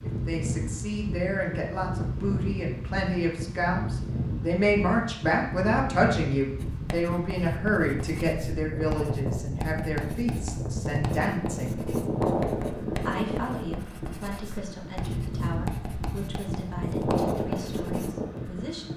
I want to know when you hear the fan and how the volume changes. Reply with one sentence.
You can hear the fan from 0.0 to 18.9 s, at a steady volume.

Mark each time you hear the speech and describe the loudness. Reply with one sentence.
The speech can be heard from 0.0 to 11.8 s, getting louder then quieter; and from 12.9 to 18.9 s, getting quieter.